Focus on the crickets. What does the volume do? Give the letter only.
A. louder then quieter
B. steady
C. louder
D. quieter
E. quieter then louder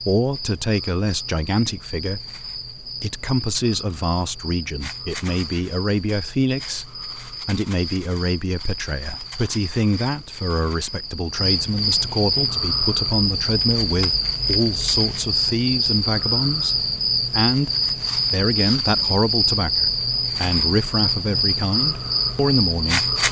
C.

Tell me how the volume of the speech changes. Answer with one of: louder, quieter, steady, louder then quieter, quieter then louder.
steady.